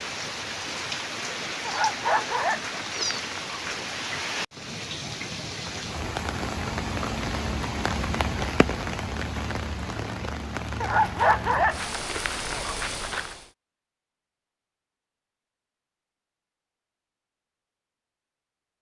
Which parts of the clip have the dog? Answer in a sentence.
The dog can be heard from 1.6 to 3.9 s and from 10.8 to 13.3 s.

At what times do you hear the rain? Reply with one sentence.
The rain can be heard from 0.0 to 13.5 s.